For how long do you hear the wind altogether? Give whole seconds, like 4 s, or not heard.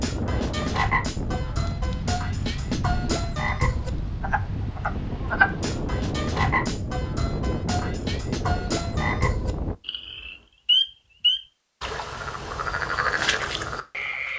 10 s.